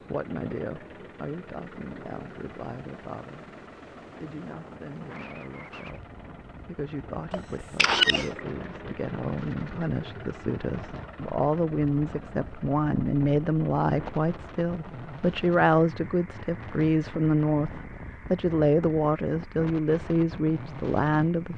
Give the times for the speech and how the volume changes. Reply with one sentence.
You can hear the speech from 0.1 to 21.5 s, getting louder.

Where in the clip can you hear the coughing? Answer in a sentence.
You can hear the coughing from 7.3 to 8.4 s.